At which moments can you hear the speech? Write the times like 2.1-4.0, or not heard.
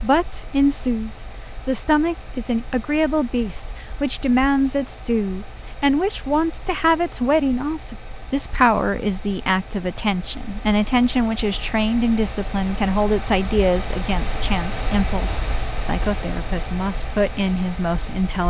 0.0-18.4.